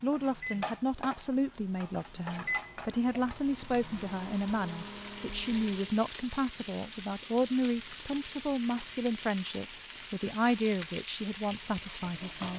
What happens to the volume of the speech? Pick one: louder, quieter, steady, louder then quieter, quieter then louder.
steady.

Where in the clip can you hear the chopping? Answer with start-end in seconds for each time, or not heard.
not heard.